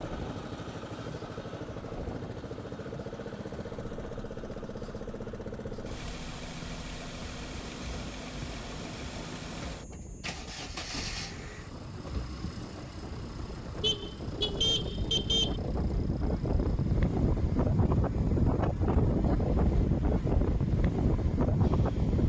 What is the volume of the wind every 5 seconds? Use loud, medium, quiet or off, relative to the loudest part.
quiet, quiet, quiet, loud, loud.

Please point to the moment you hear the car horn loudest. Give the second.
15 s.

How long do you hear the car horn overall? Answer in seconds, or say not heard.
2 s.